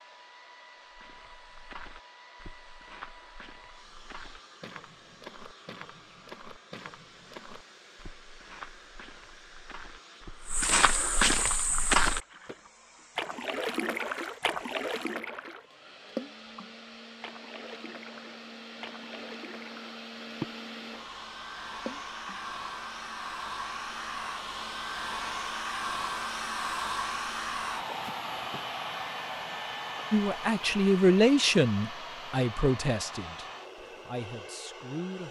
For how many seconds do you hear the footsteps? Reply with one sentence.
The footsteps can be heard for 12 seconds in total.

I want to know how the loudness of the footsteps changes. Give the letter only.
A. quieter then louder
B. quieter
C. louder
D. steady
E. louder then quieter
C.